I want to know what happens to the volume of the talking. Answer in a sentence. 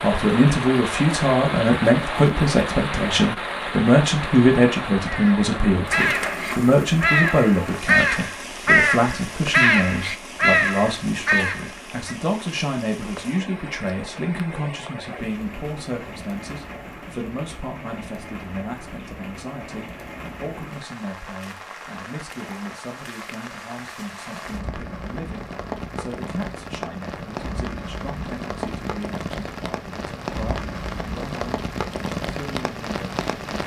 The loudness of the talking goes down.